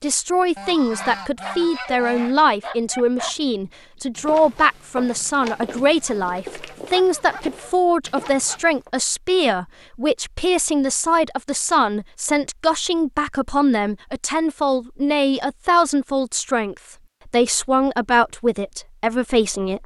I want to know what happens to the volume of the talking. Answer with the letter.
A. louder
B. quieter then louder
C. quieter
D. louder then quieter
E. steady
E.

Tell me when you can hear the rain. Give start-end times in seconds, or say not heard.
not heard.